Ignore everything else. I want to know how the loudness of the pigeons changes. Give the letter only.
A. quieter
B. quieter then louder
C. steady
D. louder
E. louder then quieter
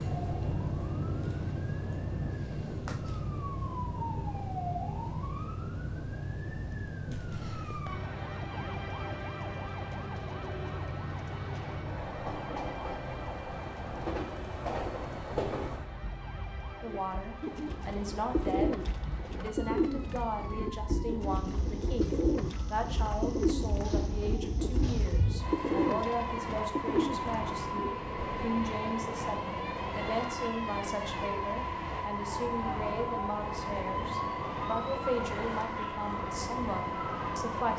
C.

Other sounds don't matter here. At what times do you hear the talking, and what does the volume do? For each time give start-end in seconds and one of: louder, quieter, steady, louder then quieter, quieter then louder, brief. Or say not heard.
16.8-37.7 steady.